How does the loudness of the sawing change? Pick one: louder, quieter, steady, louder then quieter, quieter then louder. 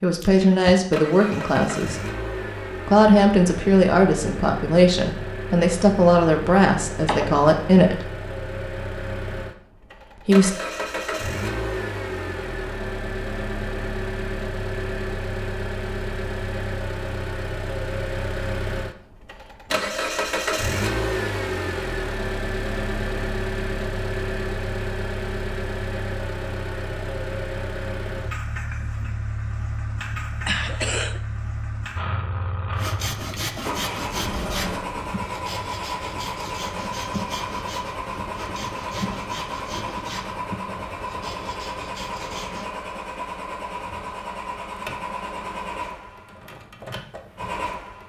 quieter.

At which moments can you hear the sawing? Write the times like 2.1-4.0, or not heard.
32.7-42.7.